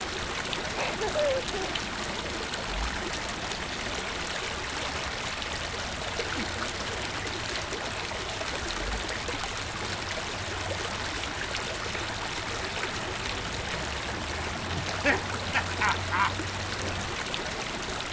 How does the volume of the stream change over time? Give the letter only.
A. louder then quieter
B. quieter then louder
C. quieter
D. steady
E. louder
D.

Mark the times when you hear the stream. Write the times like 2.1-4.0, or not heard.
0.0-18.0.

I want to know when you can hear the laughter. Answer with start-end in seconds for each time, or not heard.
0.8-1.9, 6.3-6.8, 14.8-16.4.